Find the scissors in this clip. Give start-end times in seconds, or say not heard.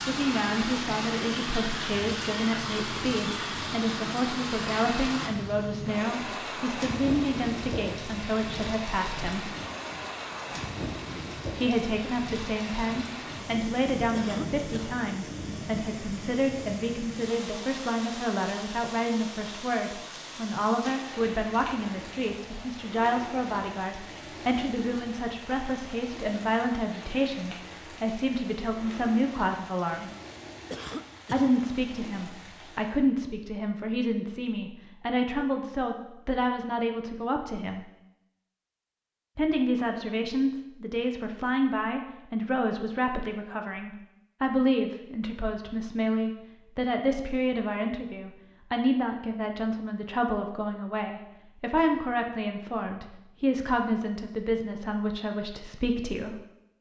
not heard.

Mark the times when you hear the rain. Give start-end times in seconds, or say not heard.
0.0-33.0.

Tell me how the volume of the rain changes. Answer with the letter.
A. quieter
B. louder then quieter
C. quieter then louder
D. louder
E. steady
A.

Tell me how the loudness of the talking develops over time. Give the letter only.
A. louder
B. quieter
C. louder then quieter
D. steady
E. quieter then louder
D.